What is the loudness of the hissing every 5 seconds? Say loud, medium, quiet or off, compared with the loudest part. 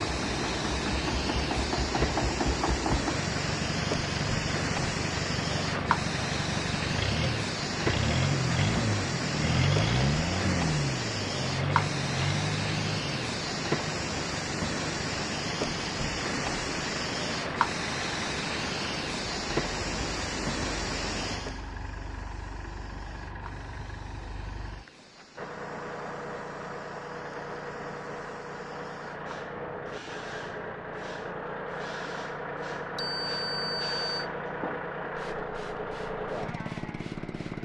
loud, loud, loud, loud, medium, quiet, quiet, quiet.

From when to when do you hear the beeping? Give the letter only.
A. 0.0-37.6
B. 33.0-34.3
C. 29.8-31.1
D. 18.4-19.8
B.